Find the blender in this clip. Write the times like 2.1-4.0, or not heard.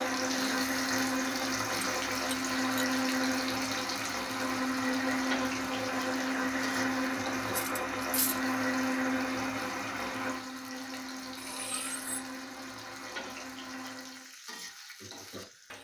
0.0-14.3.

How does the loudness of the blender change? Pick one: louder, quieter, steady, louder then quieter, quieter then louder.
quieter.